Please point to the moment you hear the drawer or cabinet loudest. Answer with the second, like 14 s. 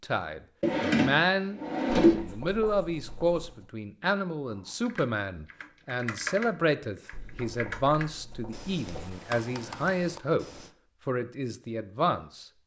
2 s.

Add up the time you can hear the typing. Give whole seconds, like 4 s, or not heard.
6 s.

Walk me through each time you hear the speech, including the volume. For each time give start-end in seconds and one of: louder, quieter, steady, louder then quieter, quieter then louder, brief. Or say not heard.
0.0-12.4 steady.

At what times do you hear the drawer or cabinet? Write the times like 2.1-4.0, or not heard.
0.6-2.2.